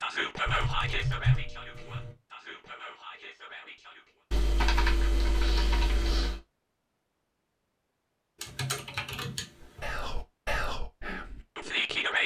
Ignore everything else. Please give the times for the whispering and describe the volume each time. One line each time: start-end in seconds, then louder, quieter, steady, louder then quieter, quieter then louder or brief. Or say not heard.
0.0-4.2 quieter
9.6-12.2 brief.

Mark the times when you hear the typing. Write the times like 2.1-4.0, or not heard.
0.5-2.1, 4.3-6.4, 8.4-9.8.